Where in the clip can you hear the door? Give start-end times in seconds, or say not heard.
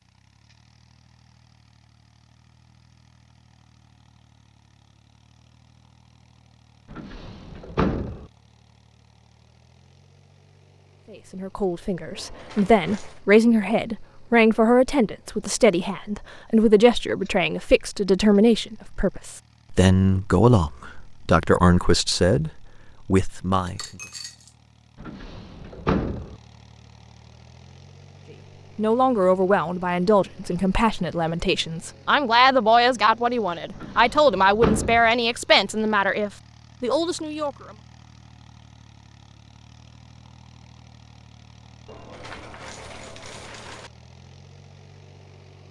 6.9-8.3, 25.0-26.4, 33.8-35.1.